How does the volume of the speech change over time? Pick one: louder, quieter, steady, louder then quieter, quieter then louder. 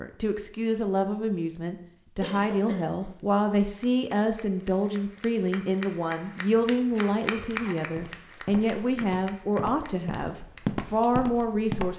steady.